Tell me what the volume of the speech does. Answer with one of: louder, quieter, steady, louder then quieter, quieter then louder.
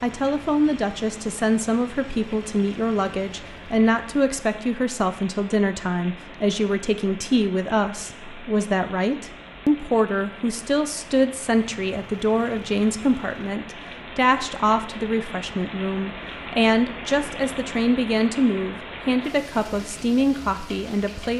steady.